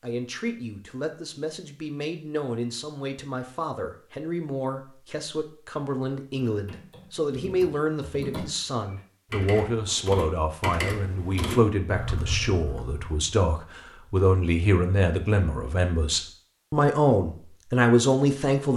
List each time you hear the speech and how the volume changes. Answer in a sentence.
You can hear the speech from 0.0 to 18.7 s, getting louder.